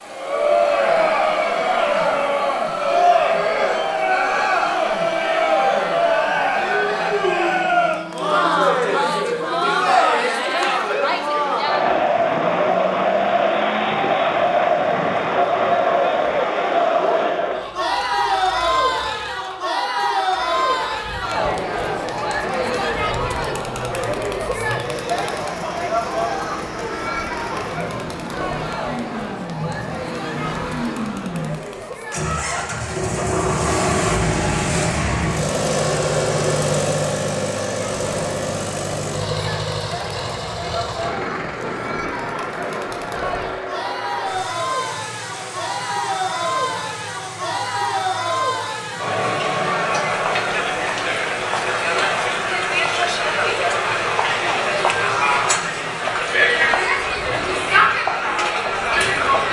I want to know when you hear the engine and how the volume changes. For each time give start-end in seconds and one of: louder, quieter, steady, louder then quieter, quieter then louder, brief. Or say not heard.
0.0-59.4 louder then quieter.